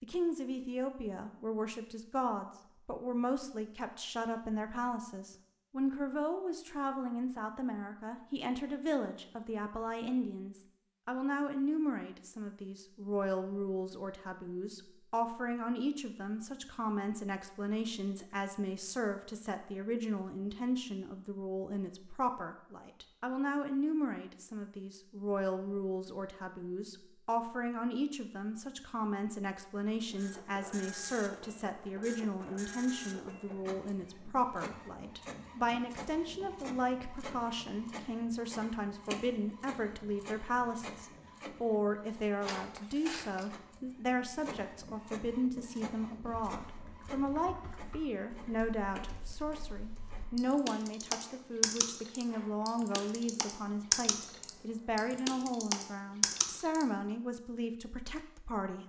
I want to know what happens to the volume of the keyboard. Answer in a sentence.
The volume of the keyboard goes up.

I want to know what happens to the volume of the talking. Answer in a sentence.
The volume of the talking stays about the same.